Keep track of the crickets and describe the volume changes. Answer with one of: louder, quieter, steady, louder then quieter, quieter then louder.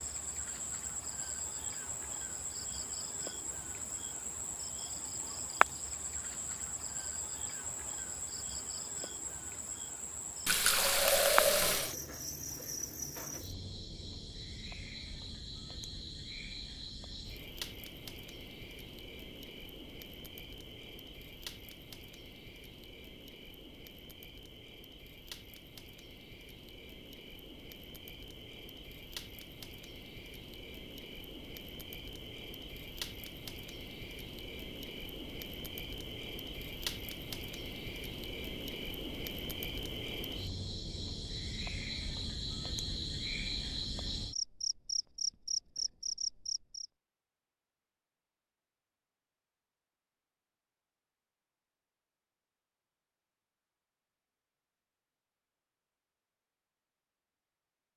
quieter then louder.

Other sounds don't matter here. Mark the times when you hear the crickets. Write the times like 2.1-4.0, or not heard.
0.0-46.9.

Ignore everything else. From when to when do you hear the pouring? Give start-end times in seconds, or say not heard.
10.4-11.9.